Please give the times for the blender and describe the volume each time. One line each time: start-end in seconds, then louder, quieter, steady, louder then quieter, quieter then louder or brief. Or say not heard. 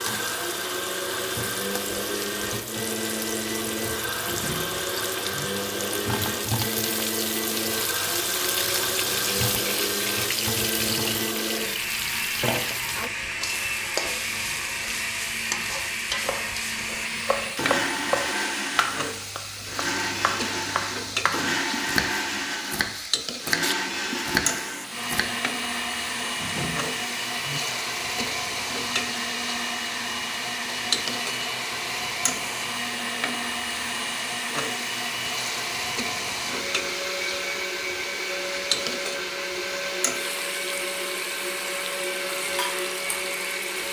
0.0-43.8 steady.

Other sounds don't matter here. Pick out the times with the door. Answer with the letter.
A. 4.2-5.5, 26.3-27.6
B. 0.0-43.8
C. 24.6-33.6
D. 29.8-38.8
A.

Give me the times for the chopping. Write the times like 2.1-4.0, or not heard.
16.2-25.3.